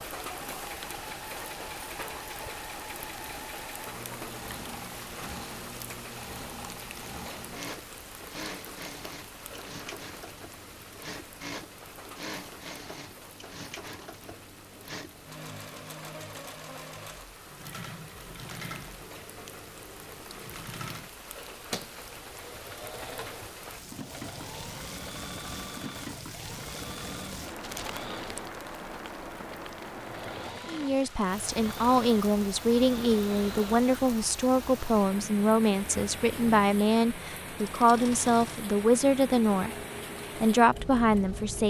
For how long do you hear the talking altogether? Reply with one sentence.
The talking can be heard for 10 seconds in total.